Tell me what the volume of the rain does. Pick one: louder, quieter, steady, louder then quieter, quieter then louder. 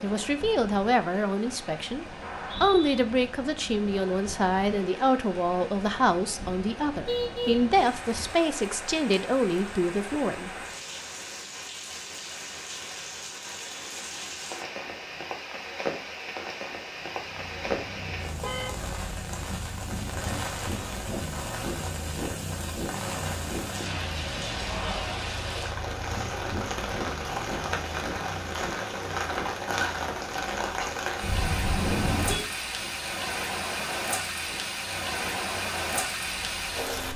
louder.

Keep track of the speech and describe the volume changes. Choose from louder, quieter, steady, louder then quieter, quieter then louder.
steady.